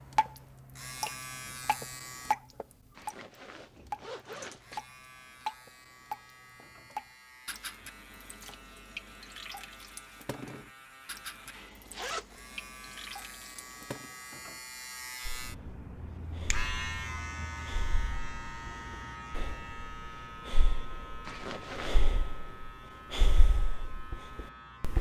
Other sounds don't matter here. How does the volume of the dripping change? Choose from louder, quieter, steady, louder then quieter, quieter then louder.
quieter.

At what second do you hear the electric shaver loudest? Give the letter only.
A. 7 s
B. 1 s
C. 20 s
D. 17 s
D.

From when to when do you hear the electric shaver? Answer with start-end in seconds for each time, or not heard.
0.0-2.4, 4.5-24.9.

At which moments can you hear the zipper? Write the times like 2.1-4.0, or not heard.
3.0-4.8, 11.5-12.3, 21.2-22.1.